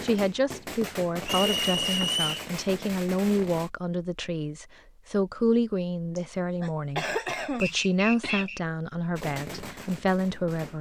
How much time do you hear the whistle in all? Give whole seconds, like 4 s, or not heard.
2 s.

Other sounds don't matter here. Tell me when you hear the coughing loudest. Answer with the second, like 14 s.
7 s.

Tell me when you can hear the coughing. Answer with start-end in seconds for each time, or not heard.
1.2-2.1, 6.2-8.5.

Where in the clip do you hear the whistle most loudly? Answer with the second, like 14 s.
2 s.